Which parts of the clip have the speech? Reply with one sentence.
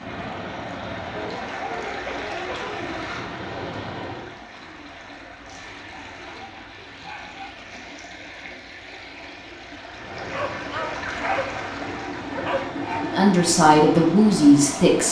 The speech can be heard from 13.0 to 15.0 s.